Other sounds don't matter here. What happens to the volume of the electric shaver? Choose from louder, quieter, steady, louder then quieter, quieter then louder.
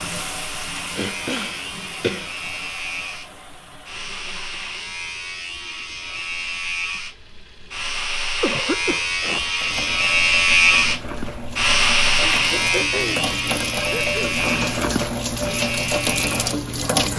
louder then quieter.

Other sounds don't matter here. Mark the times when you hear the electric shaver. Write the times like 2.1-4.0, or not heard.
0.0-17.1.